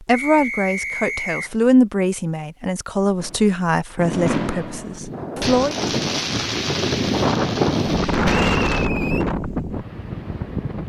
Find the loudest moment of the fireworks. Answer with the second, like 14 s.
4 s.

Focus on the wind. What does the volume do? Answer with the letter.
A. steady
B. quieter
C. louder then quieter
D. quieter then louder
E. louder
C.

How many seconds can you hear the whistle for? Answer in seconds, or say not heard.
2 s.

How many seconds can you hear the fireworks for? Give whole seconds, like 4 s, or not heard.
6 s.